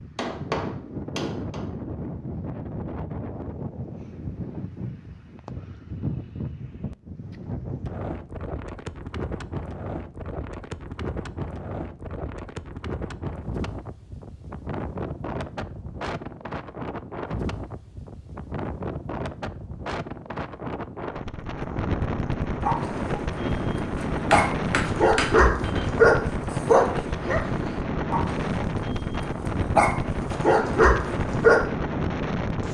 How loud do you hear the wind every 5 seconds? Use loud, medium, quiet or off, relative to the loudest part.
medium, medium, medium, medium, loud, loud, loud.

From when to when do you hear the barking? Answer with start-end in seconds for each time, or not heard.
22.6-31.6.